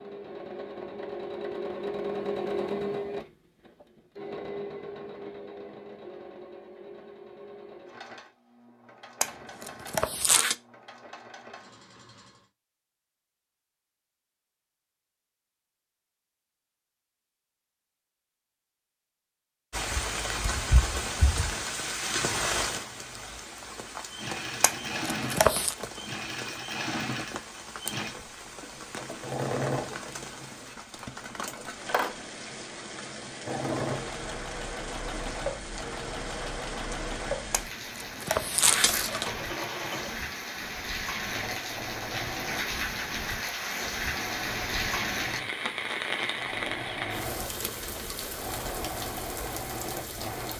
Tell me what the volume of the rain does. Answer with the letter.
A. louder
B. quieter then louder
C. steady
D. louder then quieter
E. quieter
B.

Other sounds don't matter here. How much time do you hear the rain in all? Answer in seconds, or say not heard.
31 s.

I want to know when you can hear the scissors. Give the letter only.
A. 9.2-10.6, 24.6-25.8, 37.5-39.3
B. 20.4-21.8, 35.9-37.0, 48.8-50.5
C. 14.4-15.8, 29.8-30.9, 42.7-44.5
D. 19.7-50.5
A.